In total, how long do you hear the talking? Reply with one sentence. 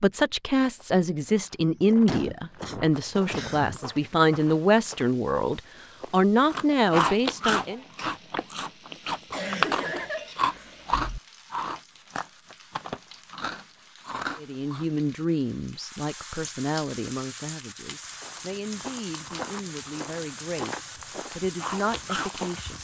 The talking can be heard for 16 seconds in total.